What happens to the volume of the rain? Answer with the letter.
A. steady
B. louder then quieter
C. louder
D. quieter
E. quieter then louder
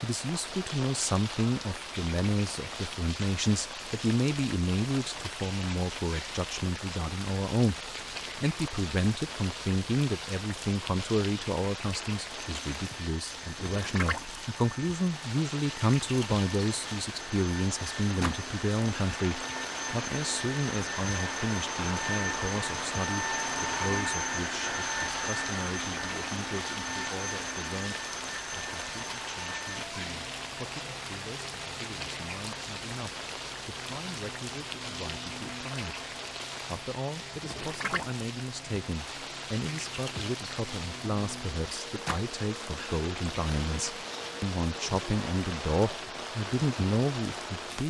A.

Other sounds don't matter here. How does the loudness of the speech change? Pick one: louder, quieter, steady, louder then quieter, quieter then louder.
quieter then louder.